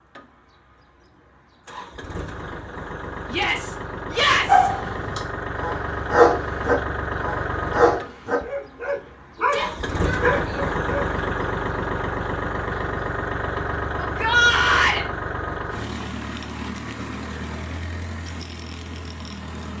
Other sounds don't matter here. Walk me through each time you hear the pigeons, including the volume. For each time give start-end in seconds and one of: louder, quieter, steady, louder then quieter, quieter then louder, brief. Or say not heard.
not heard.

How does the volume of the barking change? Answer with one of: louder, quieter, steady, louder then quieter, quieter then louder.
louder then quieter.